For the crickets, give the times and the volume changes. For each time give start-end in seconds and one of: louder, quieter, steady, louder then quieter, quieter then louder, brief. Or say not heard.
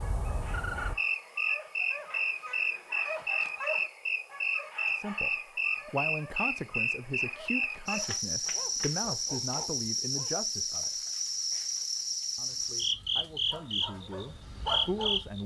0.0-15.4 steady.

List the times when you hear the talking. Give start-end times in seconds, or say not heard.
5.0-11.1, 12.3-15.4.